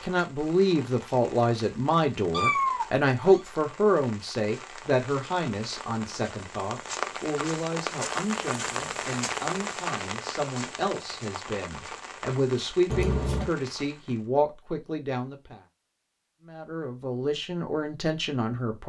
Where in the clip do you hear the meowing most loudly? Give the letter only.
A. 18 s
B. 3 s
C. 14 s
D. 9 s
B.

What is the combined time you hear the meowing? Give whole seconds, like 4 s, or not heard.
2 s.